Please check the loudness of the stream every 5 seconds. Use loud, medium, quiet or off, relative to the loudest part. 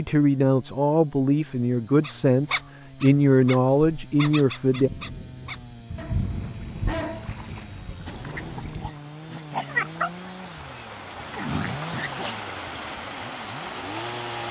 off, quiet, loud.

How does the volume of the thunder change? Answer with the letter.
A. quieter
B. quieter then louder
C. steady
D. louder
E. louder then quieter
E.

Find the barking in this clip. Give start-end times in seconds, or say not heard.
2.0-12.5.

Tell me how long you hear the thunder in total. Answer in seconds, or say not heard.
4 s.